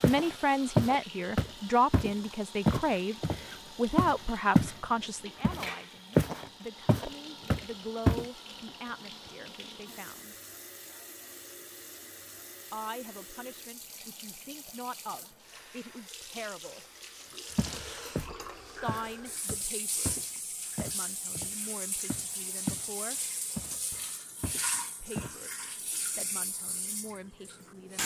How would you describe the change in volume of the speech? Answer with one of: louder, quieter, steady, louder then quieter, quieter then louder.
quieter.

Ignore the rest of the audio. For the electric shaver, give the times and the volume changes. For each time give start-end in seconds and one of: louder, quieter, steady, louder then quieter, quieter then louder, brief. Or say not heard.
not heard.